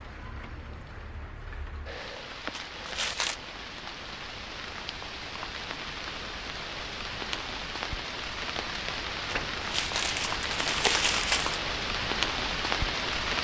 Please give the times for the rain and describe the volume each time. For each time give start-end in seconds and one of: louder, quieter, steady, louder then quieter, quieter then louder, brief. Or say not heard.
0.0-13.3 louder.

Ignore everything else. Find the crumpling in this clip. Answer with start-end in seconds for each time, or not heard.
2.5-3.4, 9.3-11.6.